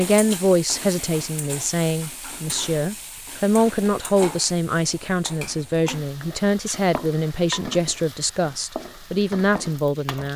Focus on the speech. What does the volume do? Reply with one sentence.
The loudness of the speech stays about the same.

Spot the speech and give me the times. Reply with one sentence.
The speech can be heard from 0.0 to 10.3 s.